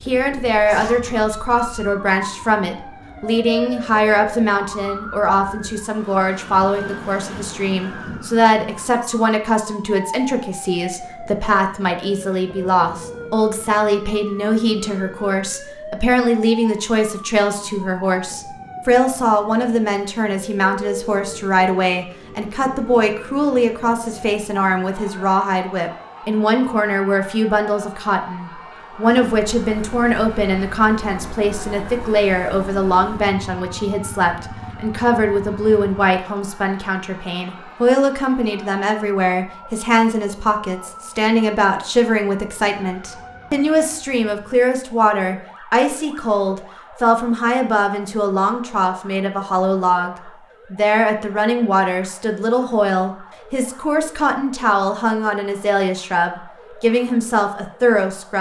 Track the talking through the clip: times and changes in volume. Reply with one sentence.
The talking can be heard from 0.1 to 58.3 s, at a steady volume.